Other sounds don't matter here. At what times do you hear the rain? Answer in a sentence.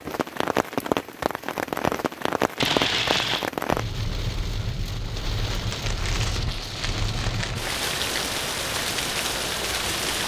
You can hear the rain from 0.0 to 10.2 s.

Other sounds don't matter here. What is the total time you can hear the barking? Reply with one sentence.
You can't hear the barking here.